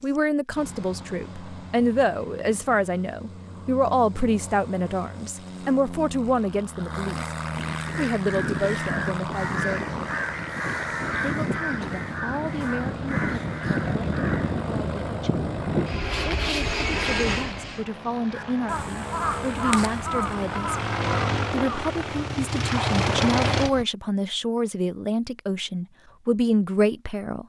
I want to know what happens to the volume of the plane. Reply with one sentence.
The volume of the plane goes up.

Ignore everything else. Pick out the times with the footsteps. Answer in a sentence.
You can't hear the footsteps here.